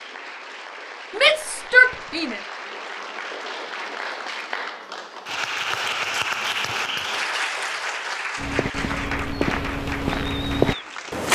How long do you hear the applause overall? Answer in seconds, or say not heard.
11 s.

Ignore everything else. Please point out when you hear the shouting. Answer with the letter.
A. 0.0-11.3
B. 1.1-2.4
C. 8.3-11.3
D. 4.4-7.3
B.